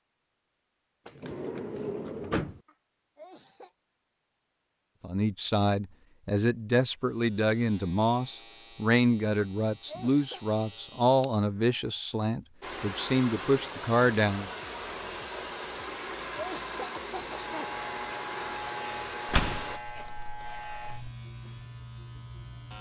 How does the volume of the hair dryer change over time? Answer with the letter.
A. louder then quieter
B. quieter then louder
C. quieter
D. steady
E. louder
D.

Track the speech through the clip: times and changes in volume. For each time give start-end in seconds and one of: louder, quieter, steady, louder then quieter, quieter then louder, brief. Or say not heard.
5.0-14.5 steady.